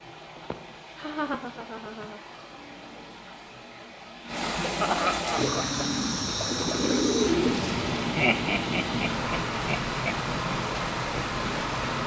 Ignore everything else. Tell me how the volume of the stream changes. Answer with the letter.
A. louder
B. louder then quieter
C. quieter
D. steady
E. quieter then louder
A.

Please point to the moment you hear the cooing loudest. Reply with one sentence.
The volume of the cooing peaks at 7 seconds.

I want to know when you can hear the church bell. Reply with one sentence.
You can't hear the church bell here.